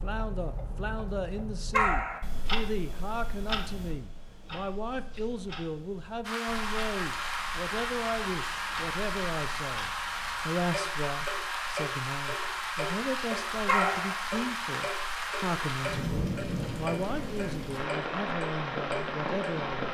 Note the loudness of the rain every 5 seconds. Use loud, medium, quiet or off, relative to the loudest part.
off, loud, loud, loud.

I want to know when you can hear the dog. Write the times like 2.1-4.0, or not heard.
1.7-2.2, 13.7-14.2.